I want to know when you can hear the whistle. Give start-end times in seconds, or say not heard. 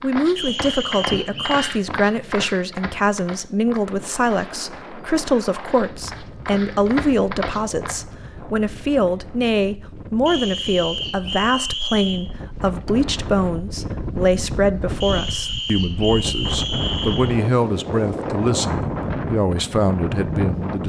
0.3-1.7, 10.2-12.2, 15.0-17.4.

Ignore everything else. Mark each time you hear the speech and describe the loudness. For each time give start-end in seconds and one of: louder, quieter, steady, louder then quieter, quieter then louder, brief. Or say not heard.
0.0-20.8 steady.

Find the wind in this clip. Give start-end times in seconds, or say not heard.
3.8-20.8.